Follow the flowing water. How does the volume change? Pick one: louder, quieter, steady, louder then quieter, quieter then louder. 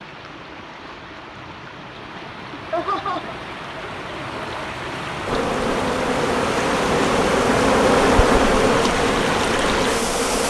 louder.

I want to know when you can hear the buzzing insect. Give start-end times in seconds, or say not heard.
5.2-10.4.